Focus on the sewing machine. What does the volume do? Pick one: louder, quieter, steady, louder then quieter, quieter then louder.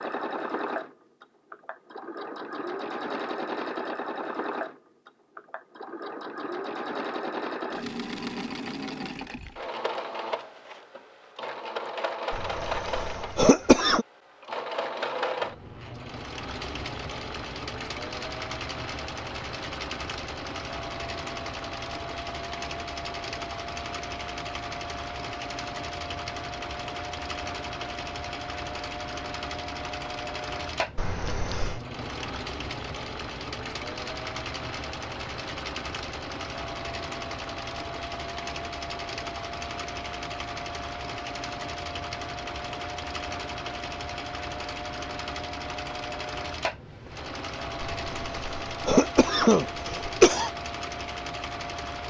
steady.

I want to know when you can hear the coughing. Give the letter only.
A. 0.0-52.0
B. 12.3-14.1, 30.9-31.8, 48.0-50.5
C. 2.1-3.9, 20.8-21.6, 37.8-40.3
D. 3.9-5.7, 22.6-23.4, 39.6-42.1
B.